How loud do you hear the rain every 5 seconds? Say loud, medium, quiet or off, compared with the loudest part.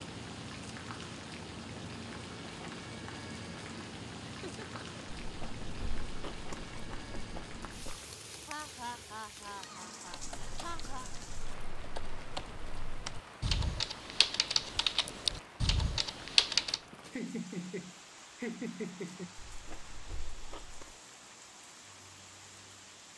loud, loud, medium, medium, medium.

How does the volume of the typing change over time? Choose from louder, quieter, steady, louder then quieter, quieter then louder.
louder.